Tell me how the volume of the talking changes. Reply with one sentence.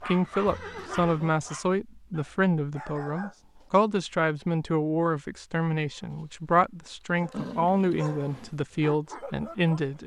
The volume of the talking stays about the same.